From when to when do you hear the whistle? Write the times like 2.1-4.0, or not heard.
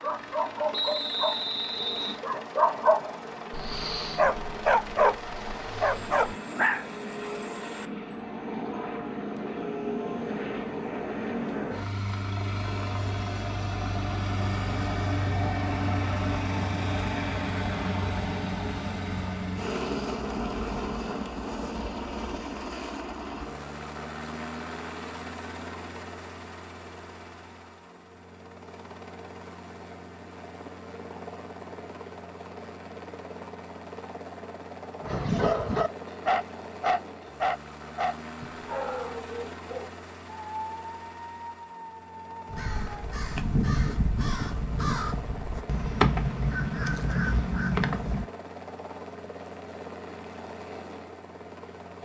0.7-2.1.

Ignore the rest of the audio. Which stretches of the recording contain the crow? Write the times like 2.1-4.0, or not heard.
42.5-48.2.